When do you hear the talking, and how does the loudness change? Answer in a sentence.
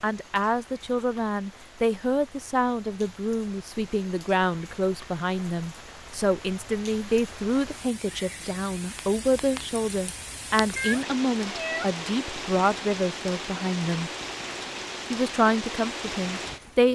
The talking can be heard from 0.0 to 14.1 s, at a steady volume; and briefly from 15.1 to 16.9 s.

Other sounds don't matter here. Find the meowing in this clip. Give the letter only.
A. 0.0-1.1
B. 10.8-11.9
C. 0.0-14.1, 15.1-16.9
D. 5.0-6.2
B.